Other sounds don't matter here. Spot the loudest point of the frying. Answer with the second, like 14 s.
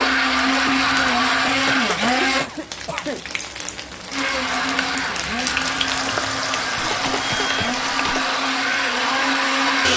6 s.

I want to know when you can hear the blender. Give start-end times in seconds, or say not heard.
0.0-2.5, 4.1-9.9.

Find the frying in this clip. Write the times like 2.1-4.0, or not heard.
0.0-9.9.